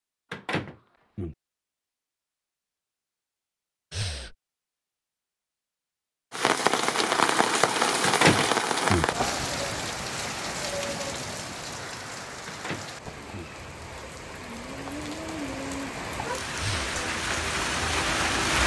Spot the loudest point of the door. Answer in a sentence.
The volume of the door peaks at 8 seconds.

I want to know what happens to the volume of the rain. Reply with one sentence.
The loudness of the rain goes down, then up.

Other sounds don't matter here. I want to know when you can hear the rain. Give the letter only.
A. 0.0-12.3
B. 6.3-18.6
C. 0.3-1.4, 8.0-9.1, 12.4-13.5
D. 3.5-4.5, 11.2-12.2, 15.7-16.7
B.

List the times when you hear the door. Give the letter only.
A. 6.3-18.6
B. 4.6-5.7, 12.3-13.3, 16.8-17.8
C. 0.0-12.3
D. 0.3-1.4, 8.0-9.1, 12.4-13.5
D.